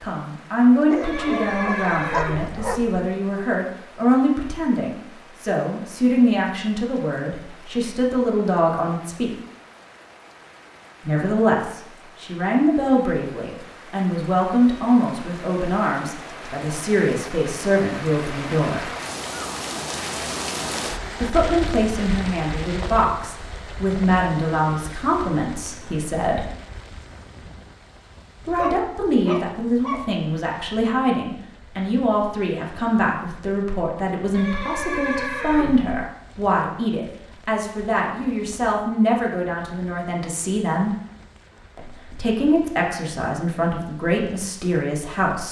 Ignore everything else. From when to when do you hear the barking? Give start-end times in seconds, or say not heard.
0.9-2.9, 28.4-30.1.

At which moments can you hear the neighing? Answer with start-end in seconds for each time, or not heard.
1.0-2.9, 34.3-36.0.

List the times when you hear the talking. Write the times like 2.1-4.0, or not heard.
0.0-9.3, 11.1-18.9, 21.2-26.4, 28.4-40.9, 41.8-45.4.